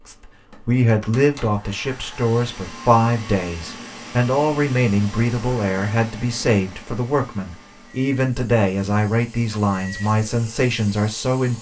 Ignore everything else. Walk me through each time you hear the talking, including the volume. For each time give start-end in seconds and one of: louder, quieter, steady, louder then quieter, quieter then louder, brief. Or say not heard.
0.1-11.5 steady.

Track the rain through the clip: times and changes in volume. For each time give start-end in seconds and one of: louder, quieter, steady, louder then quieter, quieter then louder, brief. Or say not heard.
not heard.